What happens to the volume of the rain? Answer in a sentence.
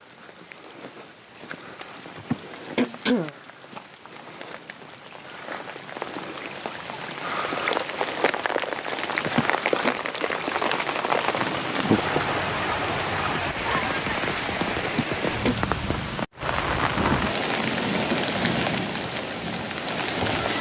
The loudness of the rain goes up.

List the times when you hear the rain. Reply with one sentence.
The rain can be heard from 0.0 to 20.5 s.